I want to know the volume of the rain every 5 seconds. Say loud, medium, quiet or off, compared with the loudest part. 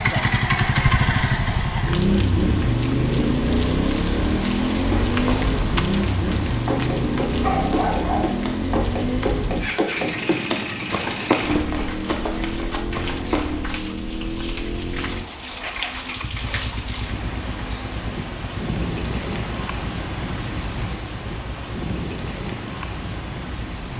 loud, loud, medium, loud, loud.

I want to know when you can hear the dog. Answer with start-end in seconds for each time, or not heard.
7.4-8.4.